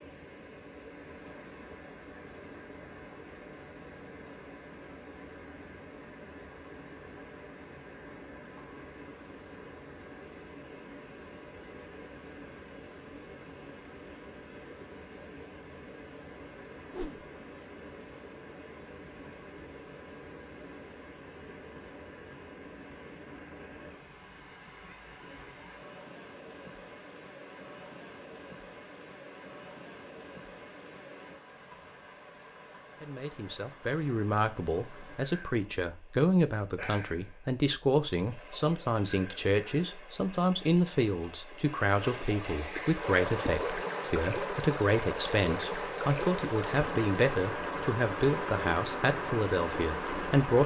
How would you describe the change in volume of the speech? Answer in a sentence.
The loudness of the speech stays about the same.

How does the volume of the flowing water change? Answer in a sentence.
The volume of the flowing water goes up.